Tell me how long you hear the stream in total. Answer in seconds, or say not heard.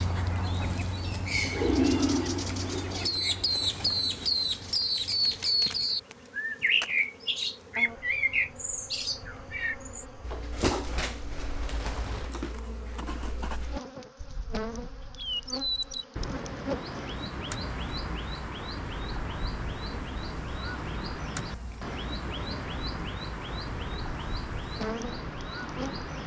not heard.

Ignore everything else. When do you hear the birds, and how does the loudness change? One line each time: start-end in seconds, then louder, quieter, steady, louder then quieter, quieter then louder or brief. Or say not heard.
0.0-26.2 quieter.